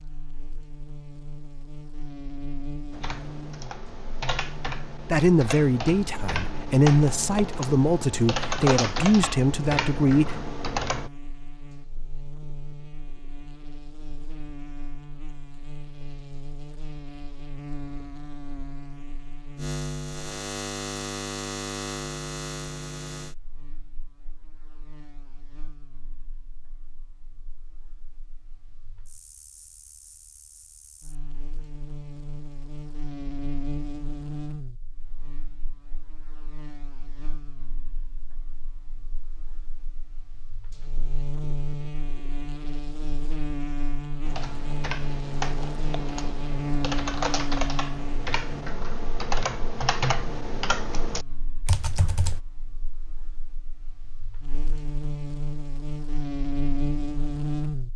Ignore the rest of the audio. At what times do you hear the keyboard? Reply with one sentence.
You can hear the keyboard from 2.9 to 11.1 s and from 44.2 to 52.4 s.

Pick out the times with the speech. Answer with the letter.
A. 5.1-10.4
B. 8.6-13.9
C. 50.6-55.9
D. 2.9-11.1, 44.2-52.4
A.